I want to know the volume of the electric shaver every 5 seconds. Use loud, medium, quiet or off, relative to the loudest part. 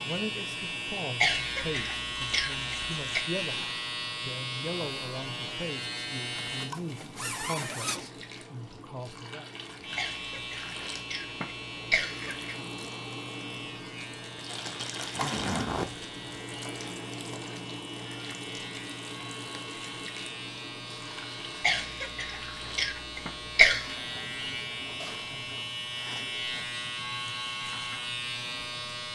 loud, loud, medium, medium, medium, loud.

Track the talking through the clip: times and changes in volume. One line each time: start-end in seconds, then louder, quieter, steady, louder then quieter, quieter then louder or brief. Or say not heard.
0.0-9.4 steady.